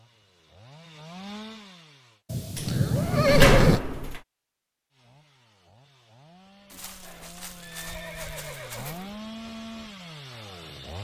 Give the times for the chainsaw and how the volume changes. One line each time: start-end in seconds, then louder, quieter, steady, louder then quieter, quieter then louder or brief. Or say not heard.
0.0-2.2 brief
4.9-10.9 louder.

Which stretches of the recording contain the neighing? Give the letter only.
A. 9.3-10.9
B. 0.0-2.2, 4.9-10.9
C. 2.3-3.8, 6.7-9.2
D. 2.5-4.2
C.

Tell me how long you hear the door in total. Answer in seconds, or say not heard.
2 s.